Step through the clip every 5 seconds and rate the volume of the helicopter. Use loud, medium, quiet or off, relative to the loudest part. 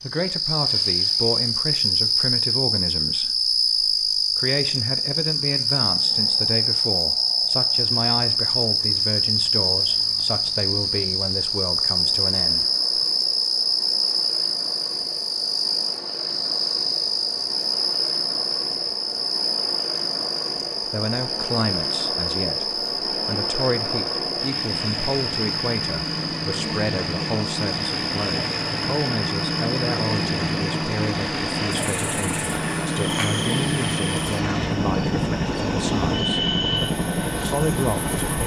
quiet, quiet, quiet, quiet, medium, loud, loud, loud.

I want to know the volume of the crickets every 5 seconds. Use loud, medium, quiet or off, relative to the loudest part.
loud, loud, loud, loud, medium, medium, medium, medium.